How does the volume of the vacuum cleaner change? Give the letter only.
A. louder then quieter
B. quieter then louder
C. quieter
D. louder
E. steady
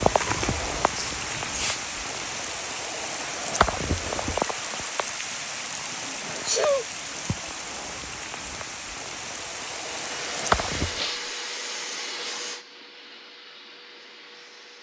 C.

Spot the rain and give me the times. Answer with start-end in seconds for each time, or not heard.
0.0-11.1.